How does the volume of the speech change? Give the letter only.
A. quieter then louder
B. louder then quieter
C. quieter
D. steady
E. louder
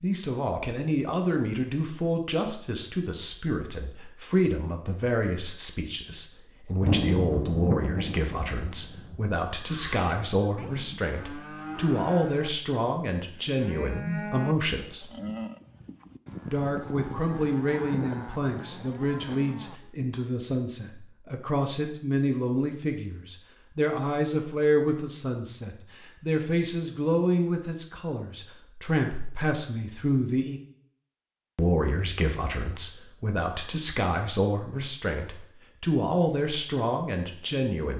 D.